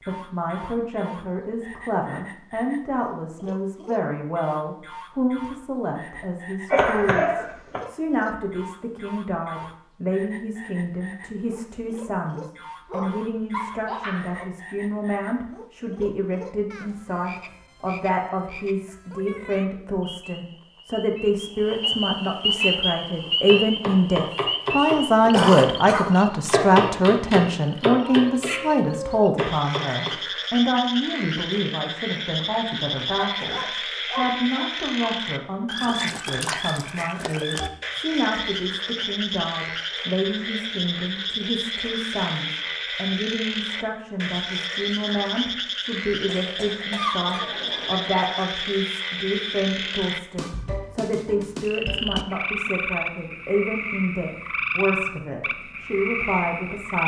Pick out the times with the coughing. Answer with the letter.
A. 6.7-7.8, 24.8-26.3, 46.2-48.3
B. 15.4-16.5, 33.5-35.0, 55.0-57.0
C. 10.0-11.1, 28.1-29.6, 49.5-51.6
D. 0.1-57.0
A.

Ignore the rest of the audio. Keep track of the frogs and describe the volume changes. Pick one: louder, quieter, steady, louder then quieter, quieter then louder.
louder.